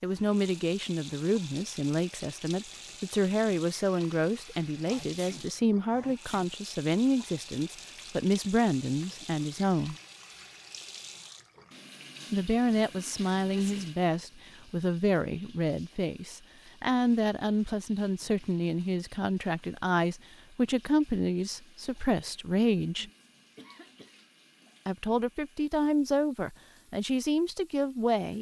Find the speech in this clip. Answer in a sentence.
You can hear the speech from 0.0 to 9.9 s, from 12.3 to 23.1 s and from 24.9 to 28.3 s.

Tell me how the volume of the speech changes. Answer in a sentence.
The loudness of the speech stays about the same.